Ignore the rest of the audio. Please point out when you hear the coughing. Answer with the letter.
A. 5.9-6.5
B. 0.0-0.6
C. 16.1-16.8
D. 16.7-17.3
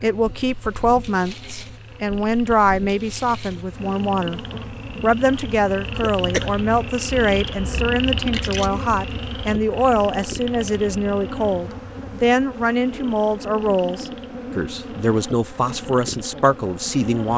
A.